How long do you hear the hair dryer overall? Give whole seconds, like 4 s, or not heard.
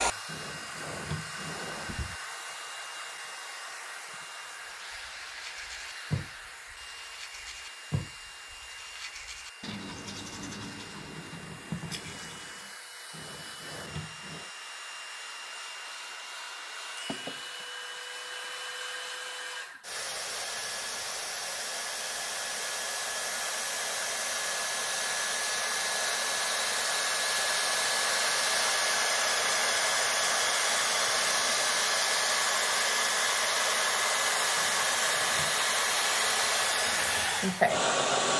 38 s.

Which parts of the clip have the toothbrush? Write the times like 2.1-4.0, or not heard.
5.2-12.7.